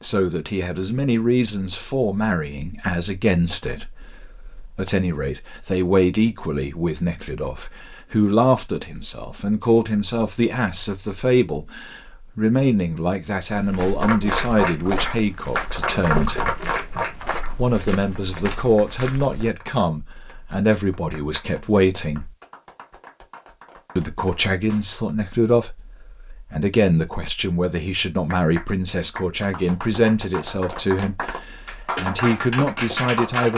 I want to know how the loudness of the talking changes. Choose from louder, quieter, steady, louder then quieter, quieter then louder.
steady.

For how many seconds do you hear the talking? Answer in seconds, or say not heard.
31 s.